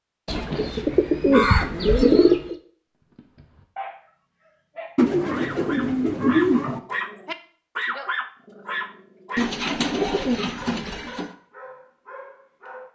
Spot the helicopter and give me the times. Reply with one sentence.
You can't hear the helicopter here.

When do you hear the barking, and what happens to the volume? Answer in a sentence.
The barking can be heard from 3.0 to 12.9 s, getting louder then quieter.